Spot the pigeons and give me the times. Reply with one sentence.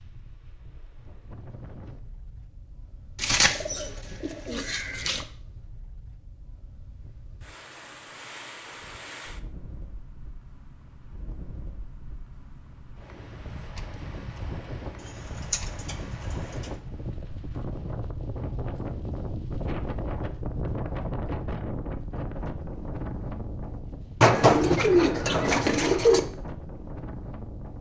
You can hear the pigeons from 3.1 to 5.2 s, from 15.1 to 16.7 s and from 24.2 to 26.2 s.